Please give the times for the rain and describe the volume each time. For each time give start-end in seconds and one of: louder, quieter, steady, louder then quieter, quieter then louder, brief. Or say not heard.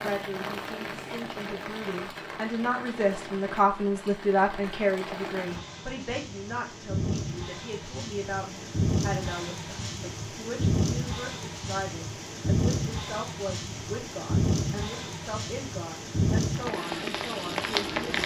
0.0-18.2 louder.